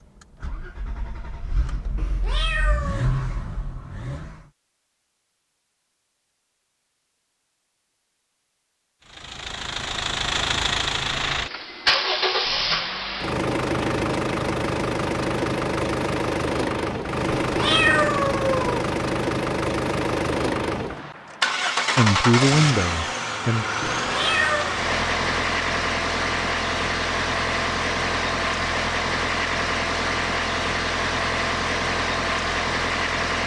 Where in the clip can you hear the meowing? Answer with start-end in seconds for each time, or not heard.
1.9-3.1, 17.4-18.7, 23.8-24.8.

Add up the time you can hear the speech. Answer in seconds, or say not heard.
2 s.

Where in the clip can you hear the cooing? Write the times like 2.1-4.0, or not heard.
not heard.